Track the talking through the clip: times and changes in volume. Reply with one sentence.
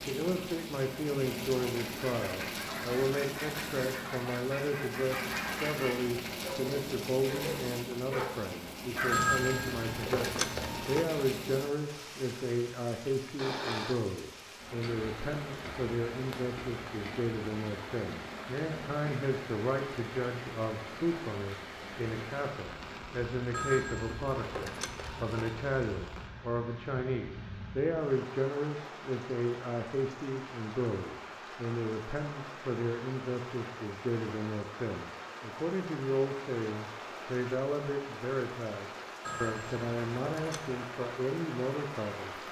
The talking can be heard from 0.0 to 42.4 s, at a steady volume.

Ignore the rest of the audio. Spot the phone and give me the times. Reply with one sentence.
The phone can be heard from 9.1 to 11.1 s, from 23.5 to 25.6 s and from 39.2 to 40.8 s.